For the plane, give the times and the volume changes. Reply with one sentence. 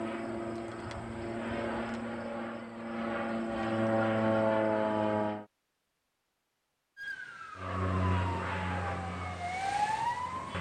The plane can be heard from 0.0 to 5.5 s, getting louder; and briefly from 7.5 to 10.5 s.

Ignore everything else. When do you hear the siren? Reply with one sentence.
The siren can be heard from 7.0 to 10.5 s.